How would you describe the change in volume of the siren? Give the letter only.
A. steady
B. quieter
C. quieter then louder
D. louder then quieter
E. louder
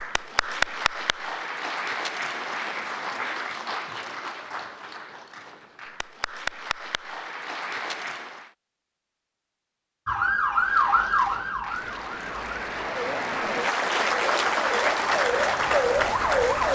C.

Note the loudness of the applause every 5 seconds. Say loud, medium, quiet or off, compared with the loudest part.
medium, medium, loud, loud.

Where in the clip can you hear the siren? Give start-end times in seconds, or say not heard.
10.1-16.6.